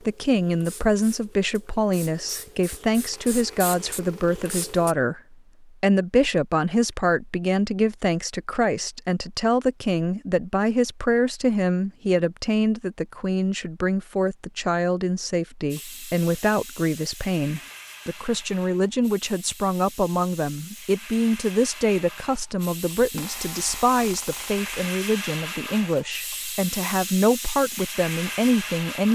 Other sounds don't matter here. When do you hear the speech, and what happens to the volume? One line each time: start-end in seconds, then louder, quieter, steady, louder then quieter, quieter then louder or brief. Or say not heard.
0.1-29.1 steady.